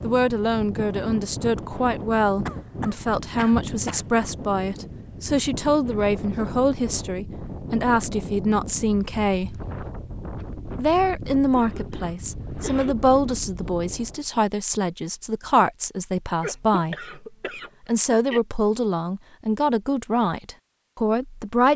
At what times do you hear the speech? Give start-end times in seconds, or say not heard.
0.0-9.6, 10.8-17.1, 17.9-21.7.